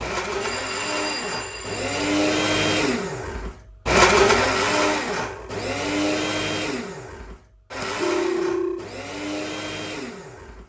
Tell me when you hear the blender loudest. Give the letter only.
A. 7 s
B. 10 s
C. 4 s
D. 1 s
C.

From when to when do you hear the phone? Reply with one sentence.
You can hear the phone from 0.4 to 2.0 s and from 8.0 to 8.8 s.